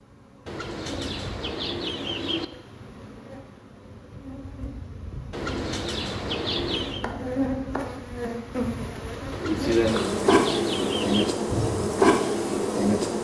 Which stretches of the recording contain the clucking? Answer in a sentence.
You can hear the clucking from 0.5 to 2.5 s, from 5.3 to 7.0 s and from 9.3 to 11.3 s.